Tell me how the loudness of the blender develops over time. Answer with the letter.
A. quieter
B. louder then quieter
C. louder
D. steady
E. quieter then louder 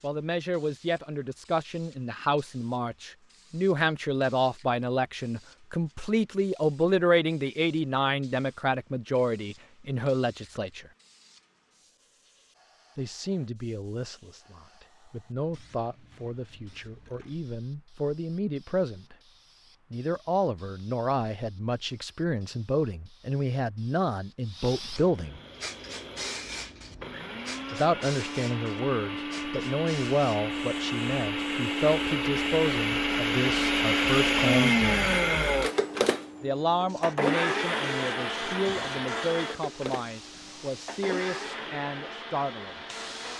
B.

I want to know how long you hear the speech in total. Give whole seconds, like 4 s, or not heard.
36 s.